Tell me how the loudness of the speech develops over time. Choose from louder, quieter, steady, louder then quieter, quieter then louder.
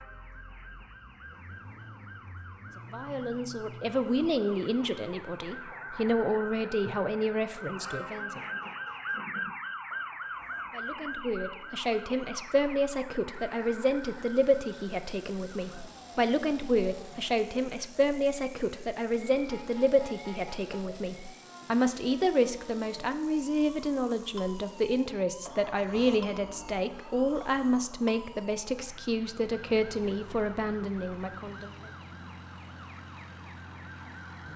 steady.